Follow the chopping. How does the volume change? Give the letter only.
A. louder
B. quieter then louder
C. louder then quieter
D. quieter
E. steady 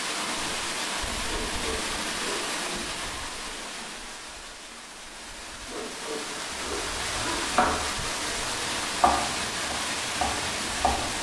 C.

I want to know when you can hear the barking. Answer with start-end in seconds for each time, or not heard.
1.2-2.5, 5.7-7.4.